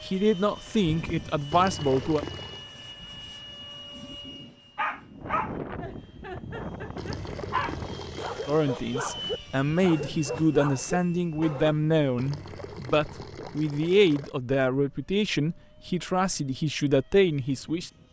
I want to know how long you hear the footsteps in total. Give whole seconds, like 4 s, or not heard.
not heard.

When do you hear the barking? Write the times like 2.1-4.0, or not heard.
4.8-11.8.